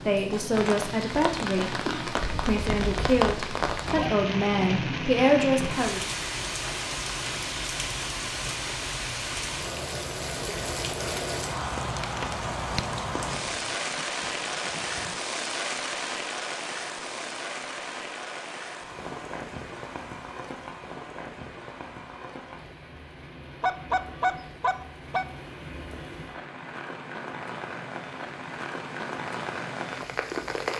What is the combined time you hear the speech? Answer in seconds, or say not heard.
6 s.